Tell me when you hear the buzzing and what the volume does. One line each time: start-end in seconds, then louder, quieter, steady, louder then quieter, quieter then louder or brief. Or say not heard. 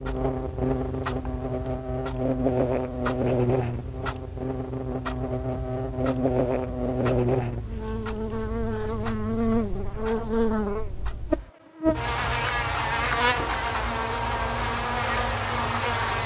0.0-16.2 steady.